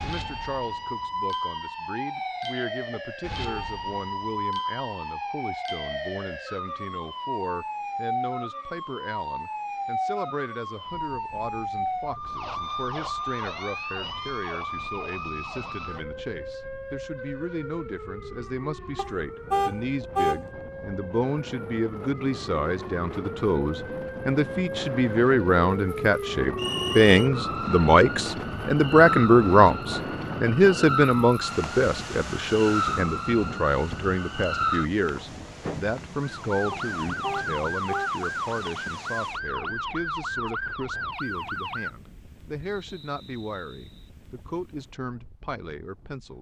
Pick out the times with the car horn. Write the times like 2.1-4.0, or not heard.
2.9-3.7, 18.9-20.4, 36.7-38.1.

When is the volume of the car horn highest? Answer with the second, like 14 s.
20 s.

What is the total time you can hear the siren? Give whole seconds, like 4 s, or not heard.
42 s.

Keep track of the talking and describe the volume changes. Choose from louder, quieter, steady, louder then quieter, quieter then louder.
louder then quieter.